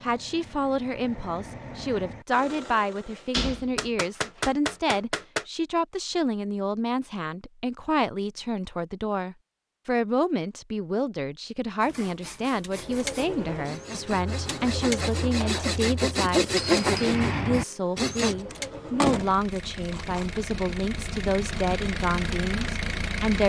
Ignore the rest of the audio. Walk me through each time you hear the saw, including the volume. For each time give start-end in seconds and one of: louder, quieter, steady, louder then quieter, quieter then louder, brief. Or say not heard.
11.8-18.4 louder.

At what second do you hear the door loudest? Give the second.
19 s.